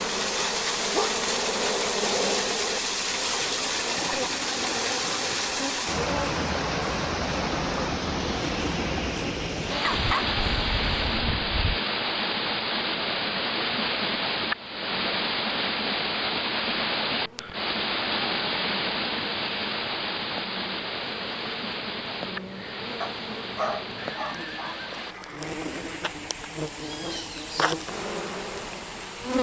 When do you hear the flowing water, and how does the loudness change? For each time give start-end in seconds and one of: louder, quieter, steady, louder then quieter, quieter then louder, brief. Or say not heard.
0.0-29.3 quieter.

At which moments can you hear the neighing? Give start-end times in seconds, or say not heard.
23.9-26.0.